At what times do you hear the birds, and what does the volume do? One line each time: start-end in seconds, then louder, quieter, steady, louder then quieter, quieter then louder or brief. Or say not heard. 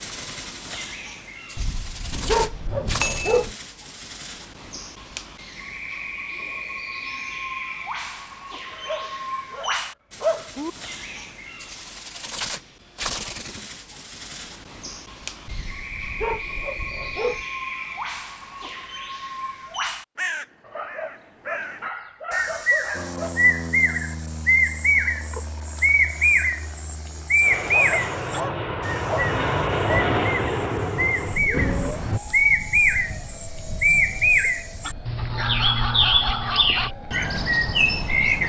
0.0-38.4 louder.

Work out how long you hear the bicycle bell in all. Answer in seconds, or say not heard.
2 s.